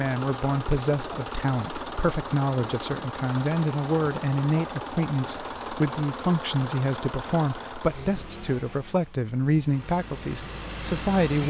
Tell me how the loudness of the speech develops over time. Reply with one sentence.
The loudness of the speech stays about the same.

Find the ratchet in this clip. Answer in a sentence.
The ratchet can't be heard in this clip.